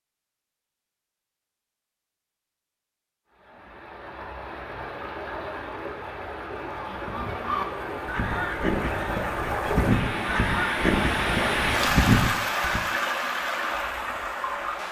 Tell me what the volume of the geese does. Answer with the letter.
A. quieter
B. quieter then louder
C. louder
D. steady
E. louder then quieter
C.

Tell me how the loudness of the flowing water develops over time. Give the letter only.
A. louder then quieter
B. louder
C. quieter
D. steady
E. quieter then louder
B.